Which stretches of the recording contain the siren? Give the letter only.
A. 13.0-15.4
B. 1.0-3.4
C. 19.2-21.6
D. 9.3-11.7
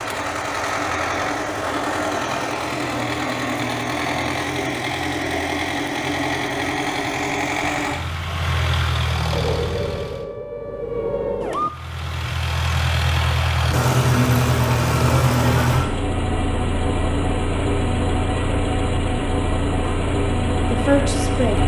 D.